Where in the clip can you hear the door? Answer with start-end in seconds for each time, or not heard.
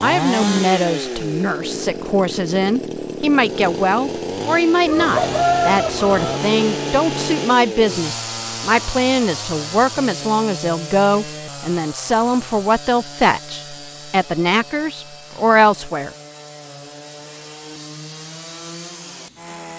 not heard.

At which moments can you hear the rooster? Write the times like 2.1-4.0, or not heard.
4.8-6.4.